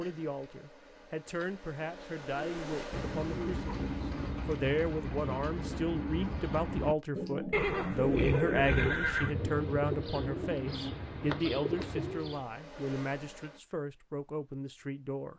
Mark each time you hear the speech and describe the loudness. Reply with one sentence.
You can hear the speech from 0.0 to 15.3 s, getting louder then quieter.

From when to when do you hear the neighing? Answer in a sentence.
The neighing can be heard from 7.5 to 9.3 s.